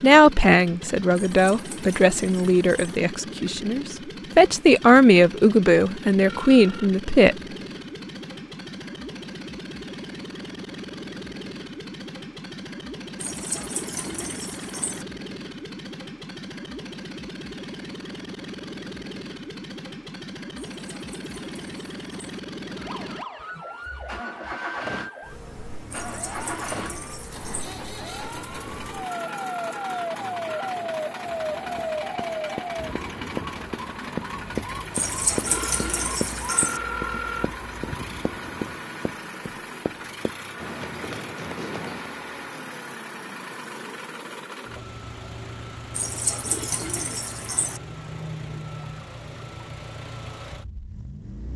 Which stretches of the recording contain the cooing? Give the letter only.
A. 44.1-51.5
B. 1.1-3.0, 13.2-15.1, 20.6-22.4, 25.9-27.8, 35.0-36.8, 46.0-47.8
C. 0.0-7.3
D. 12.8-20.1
B.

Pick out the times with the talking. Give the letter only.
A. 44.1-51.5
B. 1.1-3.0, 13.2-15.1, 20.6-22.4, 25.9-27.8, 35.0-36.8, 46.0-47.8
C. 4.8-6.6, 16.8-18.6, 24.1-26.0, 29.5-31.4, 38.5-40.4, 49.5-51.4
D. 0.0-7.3
D.